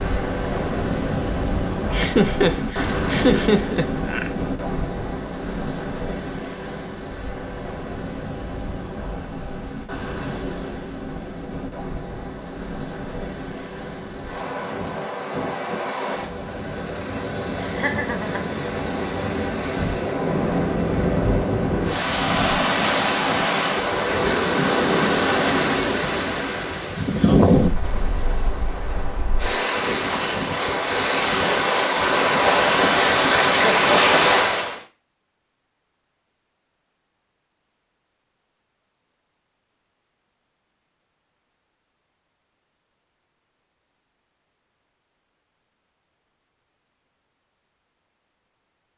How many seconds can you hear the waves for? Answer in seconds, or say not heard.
35 s.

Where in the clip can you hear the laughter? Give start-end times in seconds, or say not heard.
1.9-4.3, 17.6-18.6, 33.5-34.4.